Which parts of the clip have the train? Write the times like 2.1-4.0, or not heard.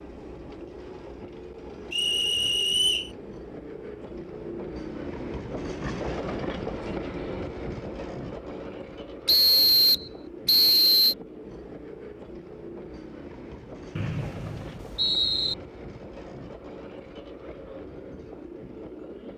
0.0-19.3.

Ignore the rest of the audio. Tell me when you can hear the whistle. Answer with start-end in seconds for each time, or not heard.
1.9-3.1, 9.2-11.2, 13.9-15.6.